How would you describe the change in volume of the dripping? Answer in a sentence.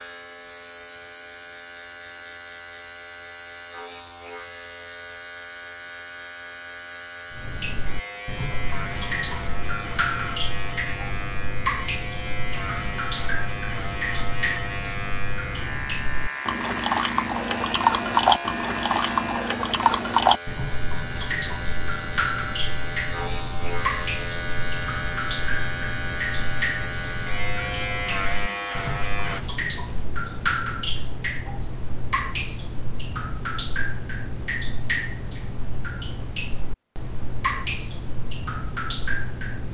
The volume of the dripping goes up, then down.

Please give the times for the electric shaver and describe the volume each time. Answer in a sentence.
You can hear the electric shaver from 0.0 to 29.4 s, getting louder.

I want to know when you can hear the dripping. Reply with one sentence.
The dripping can be heard from 7.3 to 39.6 s.